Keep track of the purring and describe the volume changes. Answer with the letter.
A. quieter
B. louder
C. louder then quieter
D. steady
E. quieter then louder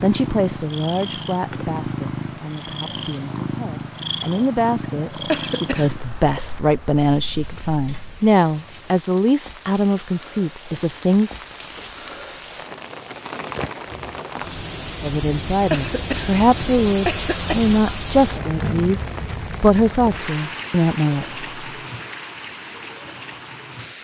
A.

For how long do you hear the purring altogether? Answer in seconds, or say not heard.
8 s.